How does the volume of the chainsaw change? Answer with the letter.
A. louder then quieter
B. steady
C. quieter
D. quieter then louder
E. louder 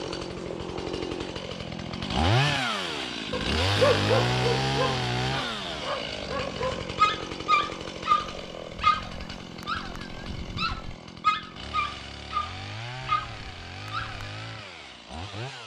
C.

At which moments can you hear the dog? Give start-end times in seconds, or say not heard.
3.3-14.2.